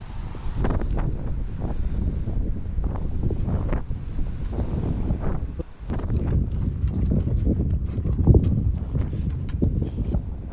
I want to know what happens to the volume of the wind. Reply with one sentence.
The volume of the wind goes down.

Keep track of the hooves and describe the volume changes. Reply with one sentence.
The loudness of the hooves goes up.